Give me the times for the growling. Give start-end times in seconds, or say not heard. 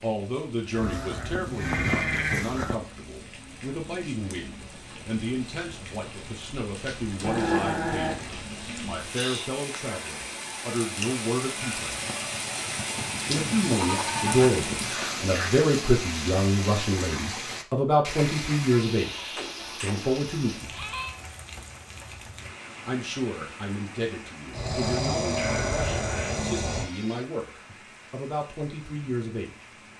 7.2-8.2, 24.5-26.9.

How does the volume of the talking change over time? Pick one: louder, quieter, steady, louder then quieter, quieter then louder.
louder then quieter.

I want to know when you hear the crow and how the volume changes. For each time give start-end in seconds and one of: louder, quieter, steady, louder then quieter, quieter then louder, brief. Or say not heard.
not heard.